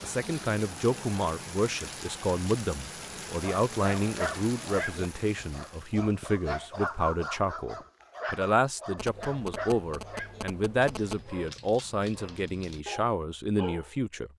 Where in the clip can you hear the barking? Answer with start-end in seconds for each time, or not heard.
3.3-13.9.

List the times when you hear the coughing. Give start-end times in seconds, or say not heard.
not heard.